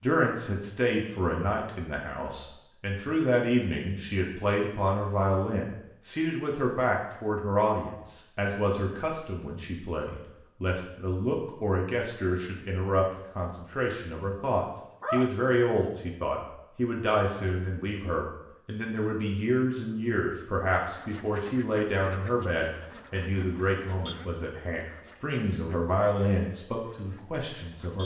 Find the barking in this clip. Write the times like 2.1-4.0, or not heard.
14.4-15.3.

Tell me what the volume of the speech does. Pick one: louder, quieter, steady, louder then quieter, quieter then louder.
steady.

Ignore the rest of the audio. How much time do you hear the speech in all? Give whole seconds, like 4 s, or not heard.
28 s.